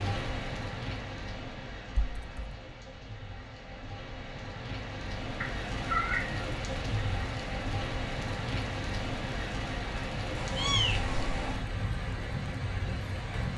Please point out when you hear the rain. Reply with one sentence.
The rain can be heard from 0.0 to 13.5 s.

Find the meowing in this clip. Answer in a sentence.
You can hear the meowing from 1.9 to 2.6 s, from 5.4 to 6.5 s and from 10.3 to 11.6 s.